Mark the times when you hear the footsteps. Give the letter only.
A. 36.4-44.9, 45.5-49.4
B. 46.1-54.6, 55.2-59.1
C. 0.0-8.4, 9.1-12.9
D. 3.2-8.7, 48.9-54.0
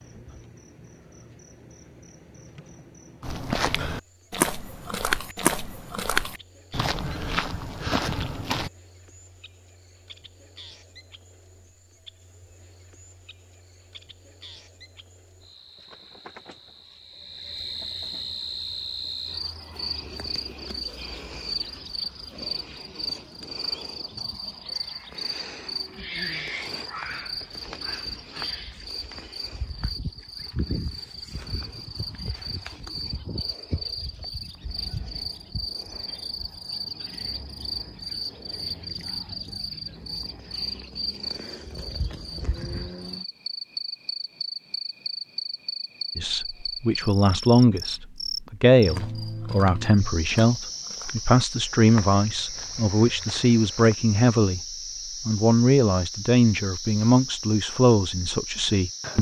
D.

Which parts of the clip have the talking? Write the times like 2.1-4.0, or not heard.
46.1-54.6, 55.2-59.1.